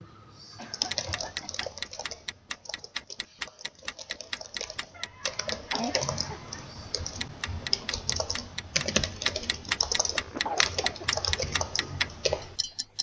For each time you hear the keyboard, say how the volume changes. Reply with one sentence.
The keyboard can be heard from 0.6 to 12.6 s, getting louder.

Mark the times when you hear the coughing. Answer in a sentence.
The coughing can be heard from 0.6 to 1.7 s, from 5.0 to 6.7 s and from 10.1 to 11.1 s.